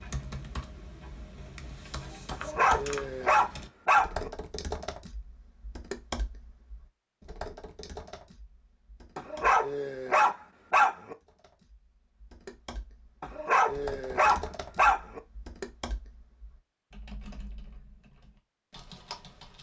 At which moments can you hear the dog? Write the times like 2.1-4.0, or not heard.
2.3-4.3, 9.2-11.2, 13.2-15.2.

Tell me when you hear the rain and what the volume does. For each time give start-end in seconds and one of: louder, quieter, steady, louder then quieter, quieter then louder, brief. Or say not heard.
not heard.